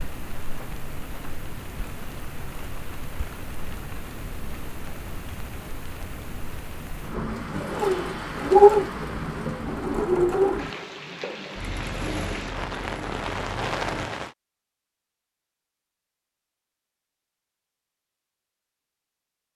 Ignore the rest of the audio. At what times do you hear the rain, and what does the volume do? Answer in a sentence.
You can hear the rain from 0.0 to 14.3 s, getting louder.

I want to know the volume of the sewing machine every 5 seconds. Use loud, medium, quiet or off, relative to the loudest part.
off, loud, medium, off.